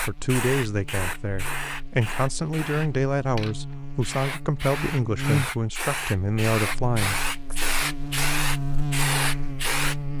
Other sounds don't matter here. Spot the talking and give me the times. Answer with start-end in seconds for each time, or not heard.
0.1-7.8.